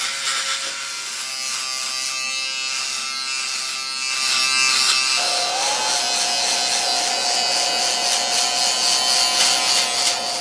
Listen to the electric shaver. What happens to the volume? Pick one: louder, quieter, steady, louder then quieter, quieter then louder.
louder.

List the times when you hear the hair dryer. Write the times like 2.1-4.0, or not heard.
5.2-10.3.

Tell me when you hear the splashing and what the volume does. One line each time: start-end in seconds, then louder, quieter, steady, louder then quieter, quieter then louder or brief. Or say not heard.
not heard.